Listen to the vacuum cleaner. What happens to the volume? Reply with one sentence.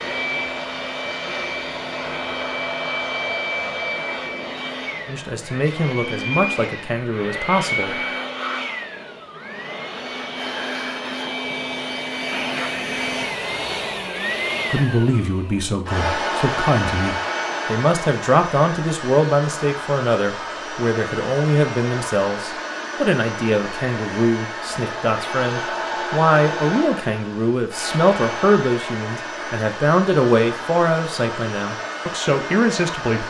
The volume of the vacuum cleaner stays about the same.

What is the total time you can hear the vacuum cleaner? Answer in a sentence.
The vacuum cleaner can be heard for 33 seconds in total.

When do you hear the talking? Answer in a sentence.
You can hear the talking from 5.0 to 8.0 s and from 14.7 to 33.2 s.